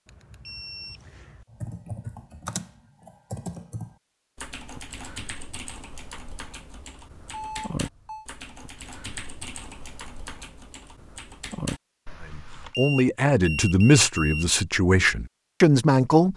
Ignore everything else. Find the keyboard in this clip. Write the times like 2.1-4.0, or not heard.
1.4-12.8.